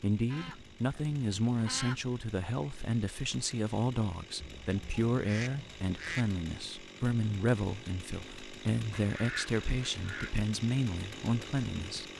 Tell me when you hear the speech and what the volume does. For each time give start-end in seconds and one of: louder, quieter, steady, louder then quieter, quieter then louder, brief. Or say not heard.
0.0-12.1 steady.